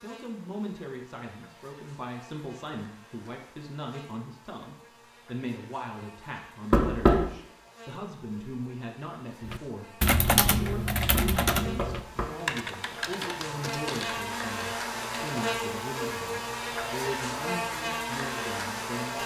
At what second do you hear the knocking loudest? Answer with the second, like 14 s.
7 s.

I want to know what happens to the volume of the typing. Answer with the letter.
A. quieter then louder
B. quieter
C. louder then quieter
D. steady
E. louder
B.